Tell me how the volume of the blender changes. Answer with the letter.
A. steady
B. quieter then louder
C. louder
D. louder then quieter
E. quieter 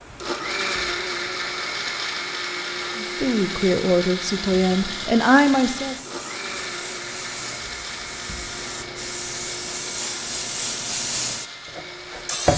E.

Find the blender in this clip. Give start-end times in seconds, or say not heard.
0.0-12.5.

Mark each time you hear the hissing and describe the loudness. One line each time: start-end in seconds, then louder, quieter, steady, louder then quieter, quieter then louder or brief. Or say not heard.
0.0-12.5 louder.